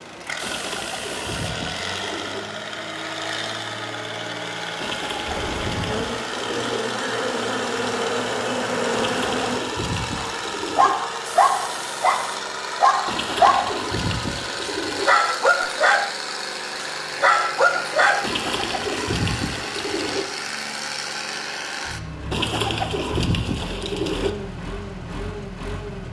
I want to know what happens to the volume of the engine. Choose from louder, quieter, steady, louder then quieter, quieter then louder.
steady.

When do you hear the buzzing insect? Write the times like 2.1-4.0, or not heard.
5.2-9.7.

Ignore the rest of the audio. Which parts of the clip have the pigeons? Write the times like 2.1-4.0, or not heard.
0.4-2.5, 4.8-6.8, 8.9-10.9, 13.1-15.1, 18.2-20.2, 22.3-24.3.